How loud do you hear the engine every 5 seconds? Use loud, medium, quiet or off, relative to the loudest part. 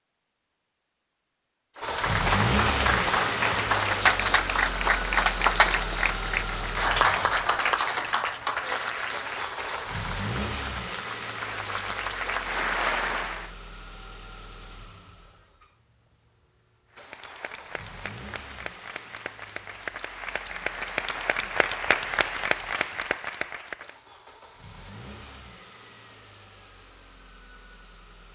loud, medium, medium, quiet, quiet, quiet.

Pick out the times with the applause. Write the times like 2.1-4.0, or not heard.
1.8-13.5, 16.9-24.0.